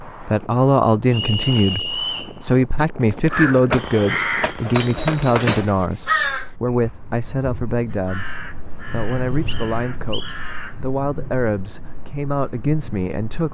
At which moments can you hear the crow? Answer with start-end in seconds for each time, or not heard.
3.3-10.8.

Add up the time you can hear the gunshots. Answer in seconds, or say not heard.
2 s.